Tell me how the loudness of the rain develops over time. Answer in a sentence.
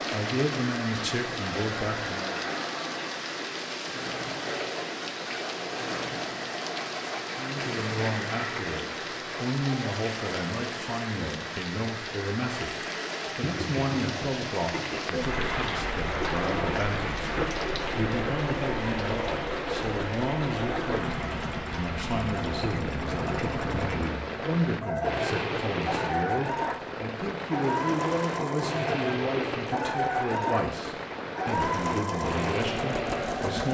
The loudness of the rain stays about the same.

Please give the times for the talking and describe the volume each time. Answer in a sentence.
You can hear the talking briefly from 0.1 to 2.4 s; and from 7.3 to 33.6 s, at a steady volume.